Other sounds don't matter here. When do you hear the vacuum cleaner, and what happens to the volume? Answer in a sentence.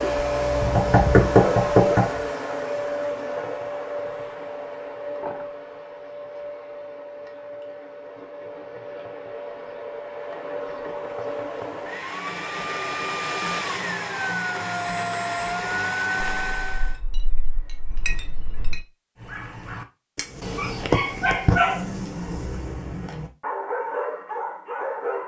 The vacuum cleaner can be heard from 0.0 to 17.0 s, getting quieter then louder.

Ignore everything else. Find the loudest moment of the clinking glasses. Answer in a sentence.
The loudest moment of the clinking glasses is at 18 seconds.